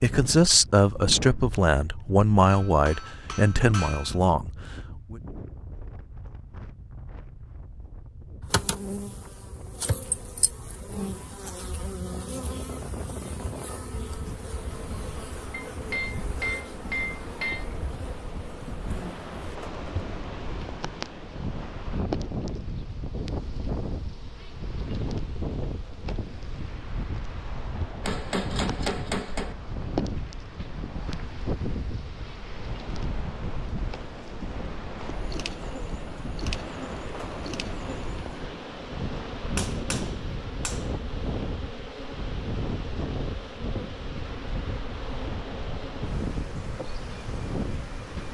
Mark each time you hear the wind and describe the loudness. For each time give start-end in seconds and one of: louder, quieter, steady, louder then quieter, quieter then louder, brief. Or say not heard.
0.0-48.2 louder.